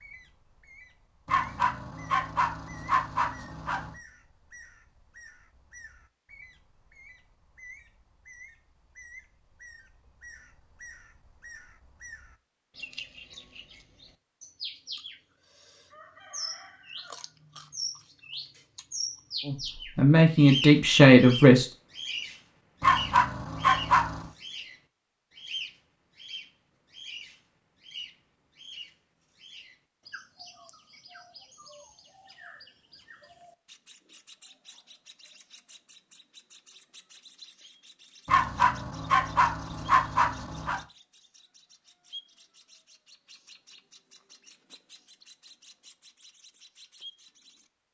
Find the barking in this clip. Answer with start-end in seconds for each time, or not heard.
1.2-4.0, 22.8-24.3, 38.2-40.8.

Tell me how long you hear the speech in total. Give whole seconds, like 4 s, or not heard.
2 s.